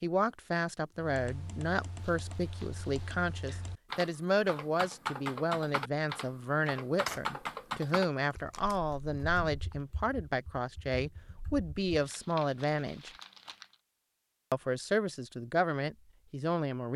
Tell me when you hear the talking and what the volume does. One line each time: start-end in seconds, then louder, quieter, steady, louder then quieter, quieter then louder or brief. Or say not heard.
0.0-13.1 steady
14.5-16.9 brief.